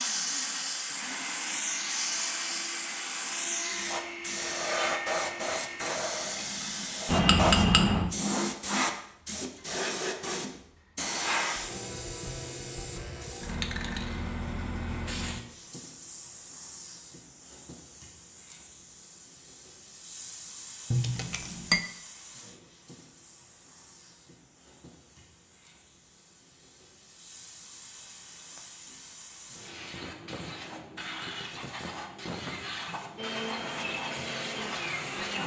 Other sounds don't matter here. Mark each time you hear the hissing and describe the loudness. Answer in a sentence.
The hissing can be heard from 0.0 to 35.4 s, getting quieter then louder.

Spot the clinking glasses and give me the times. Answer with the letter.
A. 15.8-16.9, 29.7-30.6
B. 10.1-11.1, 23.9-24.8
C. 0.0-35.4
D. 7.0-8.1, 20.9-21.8
D.